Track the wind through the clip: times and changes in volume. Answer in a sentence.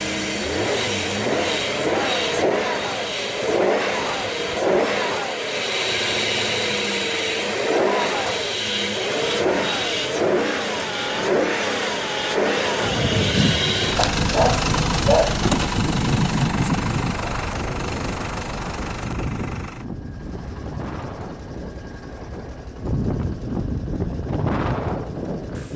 You can hear the wind from 12.8 to 25.7 s, getting quieter then louder.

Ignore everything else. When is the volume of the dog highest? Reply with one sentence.
The loudest moment of the dog is at 15 seconds.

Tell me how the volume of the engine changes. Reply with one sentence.
The volume of the engine goes down.